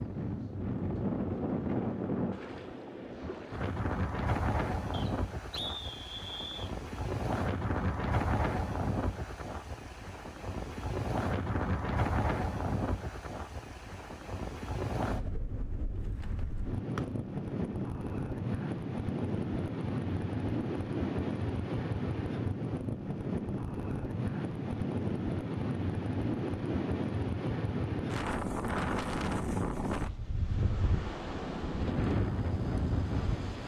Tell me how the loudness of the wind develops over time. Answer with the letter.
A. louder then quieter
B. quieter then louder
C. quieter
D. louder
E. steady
E.